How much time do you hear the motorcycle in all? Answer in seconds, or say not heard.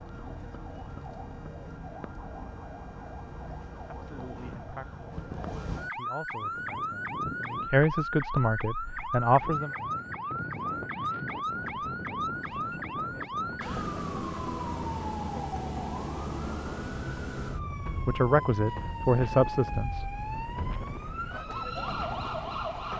not heard.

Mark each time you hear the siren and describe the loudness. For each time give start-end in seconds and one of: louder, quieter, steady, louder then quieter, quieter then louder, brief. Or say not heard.
0.0-22.9 louder.